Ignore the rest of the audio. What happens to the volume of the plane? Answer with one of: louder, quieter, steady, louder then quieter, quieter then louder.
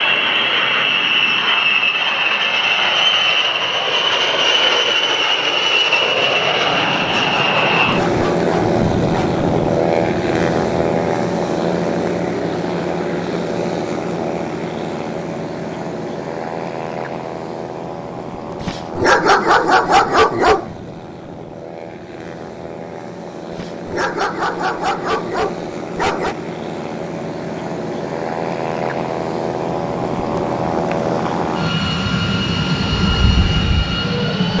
quieter then louder.